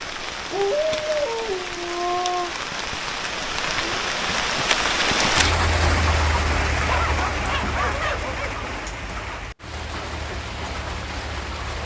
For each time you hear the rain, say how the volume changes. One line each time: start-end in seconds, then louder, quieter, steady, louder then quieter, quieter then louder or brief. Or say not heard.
0.0-11.8 louder then quieter.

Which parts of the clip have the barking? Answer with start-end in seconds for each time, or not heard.
0.5-2.5, 6.7-8.7.